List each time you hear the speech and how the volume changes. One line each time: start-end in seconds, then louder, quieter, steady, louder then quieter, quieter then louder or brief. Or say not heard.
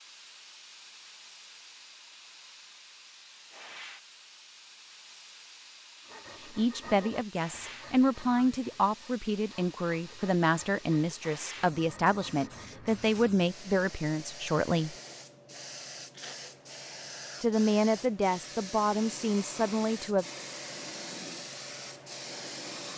6.5-14.9 steady
17.4-20.2 brief.